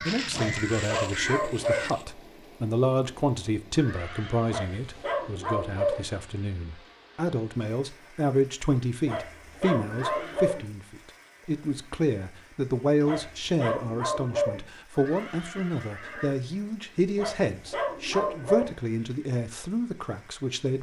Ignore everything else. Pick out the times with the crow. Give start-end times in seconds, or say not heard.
0.0-2.0.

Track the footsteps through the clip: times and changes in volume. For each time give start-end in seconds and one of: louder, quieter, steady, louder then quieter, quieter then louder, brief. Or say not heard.
not heard.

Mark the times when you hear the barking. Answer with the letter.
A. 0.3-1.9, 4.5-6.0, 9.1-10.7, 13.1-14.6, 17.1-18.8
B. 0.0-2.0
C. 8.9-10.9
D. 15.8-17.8
A.